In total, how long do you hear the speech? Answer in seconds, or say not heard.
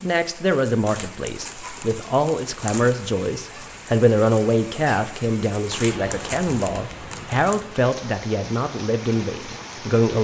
10 s.